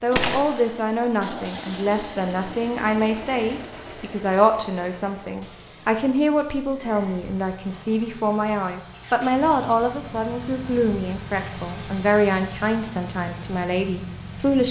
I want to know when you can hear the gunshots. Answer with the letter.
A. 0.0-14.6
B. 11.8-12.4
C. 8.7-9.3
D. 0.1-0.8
D.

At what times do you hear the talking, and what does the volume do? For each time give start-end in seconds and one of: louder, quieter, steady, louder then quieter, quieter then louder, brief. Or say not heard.
0.0-14.6 steady.